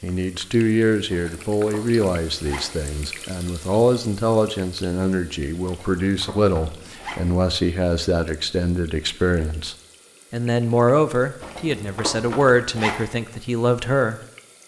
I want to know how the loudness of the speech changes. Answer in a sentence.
The loudness of the speech stays about the same.